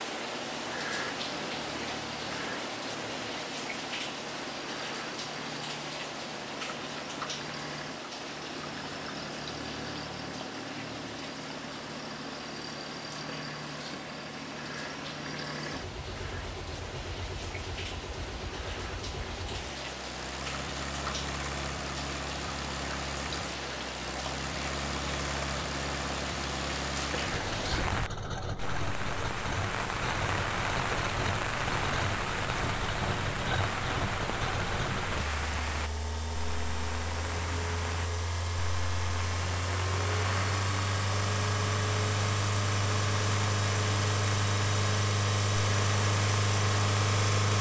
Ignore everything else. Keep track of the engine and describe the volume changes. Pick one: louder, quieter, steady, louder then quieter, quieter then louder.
louder.